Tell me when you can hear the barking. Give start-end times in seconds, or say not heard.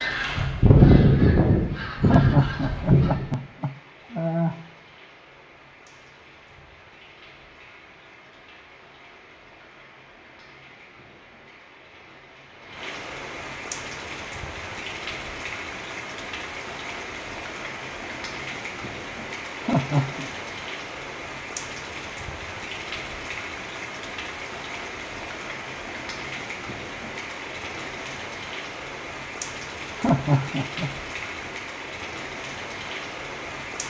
not heard.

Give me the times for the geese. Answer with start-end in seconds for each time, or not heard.
0.0-3.2.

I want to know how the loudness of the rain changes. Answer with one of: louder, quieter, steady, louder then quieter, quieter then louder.
louder.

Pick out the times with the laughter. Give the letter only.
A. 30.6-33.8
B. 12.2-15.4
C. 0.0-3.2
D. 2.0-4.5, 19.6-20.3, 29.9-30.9
D.